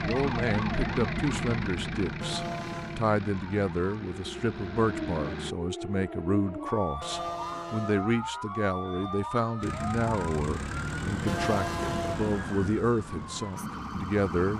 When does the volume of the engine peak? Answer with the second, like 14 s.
1 s.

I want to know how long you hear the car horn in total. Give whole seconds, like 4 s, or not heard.
3 s.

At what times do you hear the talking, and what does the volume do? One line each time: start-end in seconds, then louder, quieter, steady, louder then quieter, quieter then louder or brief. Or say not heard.
0.0-14.5 steady.